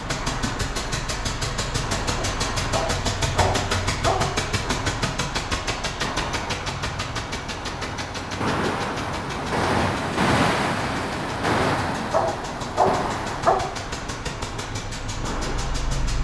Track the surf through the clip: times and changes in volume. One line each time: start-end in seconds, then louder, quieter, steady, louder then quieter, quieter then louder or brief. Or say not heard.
0.0-16.1 louder then quieter.